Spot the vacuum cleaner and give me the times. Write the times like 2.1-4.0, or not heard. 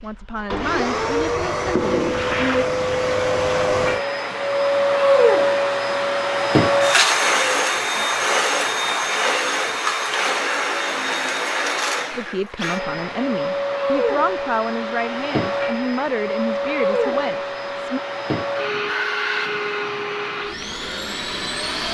0.0-21.8.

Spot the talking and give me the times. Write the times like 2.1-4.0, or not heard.
0.0-2.6, 12.1-18.0.